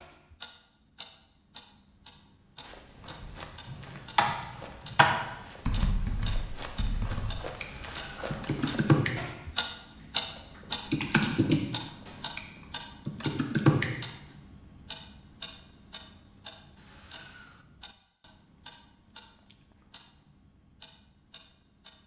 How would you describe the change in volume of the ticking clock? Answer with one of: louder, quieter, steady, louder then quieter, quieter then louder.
louder then quieter.